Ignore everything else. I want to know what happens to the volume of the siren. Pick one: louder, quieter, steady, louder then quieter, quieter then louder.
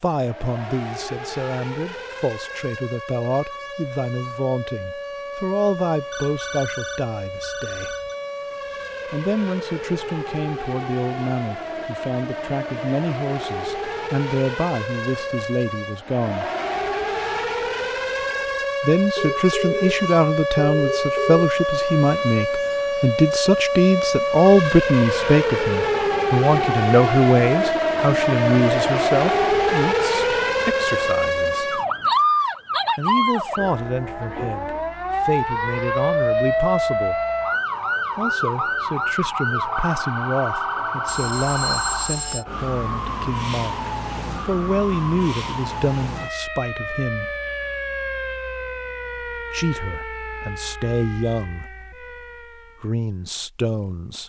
louder then quieter.